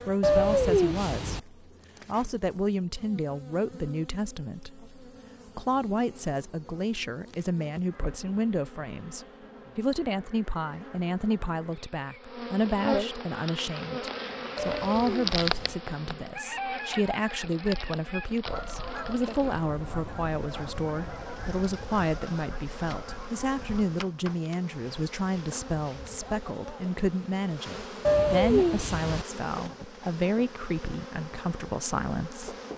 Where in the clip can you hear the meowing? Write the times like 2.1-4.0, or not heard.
0.2-1.4, 14.6-15.8, 28.1-29.2.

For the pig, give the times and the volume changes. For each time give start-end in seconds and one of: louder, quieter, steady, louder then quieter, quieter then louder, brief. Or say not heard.
not heard.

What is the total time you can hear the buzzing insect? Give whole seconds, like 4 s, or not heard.
33 s.